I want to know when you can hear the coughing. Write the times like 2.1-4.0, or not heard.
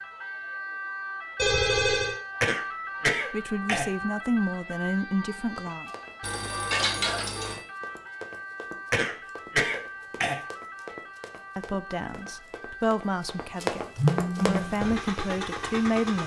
2.4-3.9, 8.9-10.4.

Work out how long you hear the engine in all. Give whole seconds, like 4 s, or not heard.
2 s.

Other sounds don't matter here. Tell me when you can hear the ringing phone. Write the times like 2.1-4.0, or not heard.
1.4-2.2, 6.2-7.6, 13.9-14.6.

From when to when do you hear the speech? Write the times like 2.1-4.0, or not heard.
3.3-5.9, 11.6-16.2.